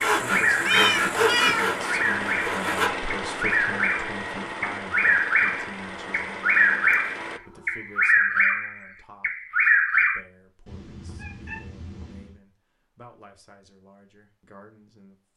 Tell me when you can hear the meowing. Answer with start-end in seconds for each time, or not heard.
0.5-1.8, 6.9-8.1, 10.7-12.3.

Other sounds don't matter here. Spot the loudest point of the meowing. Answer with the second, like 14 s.
1 s.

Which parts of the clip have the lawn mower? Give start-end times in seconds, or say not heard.
0.0-7.4.